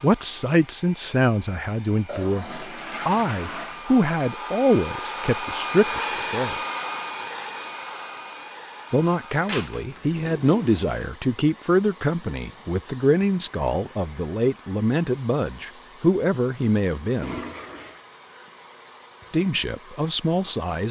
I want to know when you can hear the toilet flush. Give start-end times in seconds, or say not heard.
2.0-3.9, 9.4-11.0, 17.2-18.0.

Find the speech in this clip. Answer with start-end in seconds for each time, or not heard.
0.0-6.6, 8.9-17.4, 19.3-20.8.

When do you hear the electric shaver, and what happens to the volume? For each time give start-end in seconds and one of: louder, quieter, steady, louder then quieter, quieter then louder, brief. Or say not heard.
not heard.